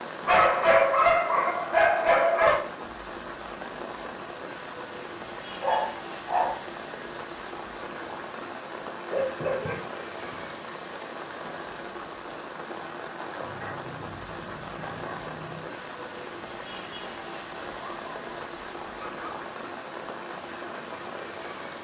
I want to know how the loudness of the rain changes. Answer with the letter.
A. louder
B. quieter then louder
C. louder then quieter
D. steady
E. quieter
D.